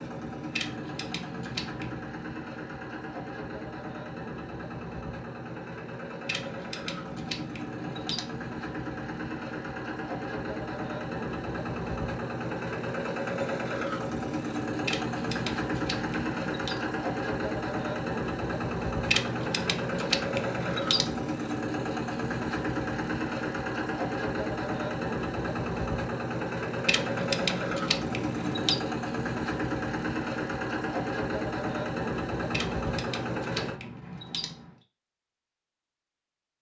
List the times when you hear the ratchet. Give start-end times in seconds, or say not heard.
0.5-2.0, 6.2-8.2, 14.8-16.8, 19.1-21.2, 26.9-28.8, 32.5-34.7.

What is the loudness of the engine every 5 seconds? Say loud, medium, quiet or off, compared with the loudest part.
medium, medium, loud, loud, loud, loud, loud, off.